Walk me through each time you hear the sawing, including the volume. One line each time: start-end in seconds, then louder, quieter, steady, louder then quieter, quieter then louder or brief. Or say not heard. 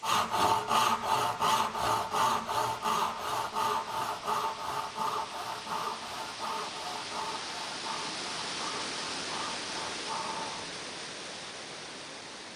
0.0-10.7 quieter.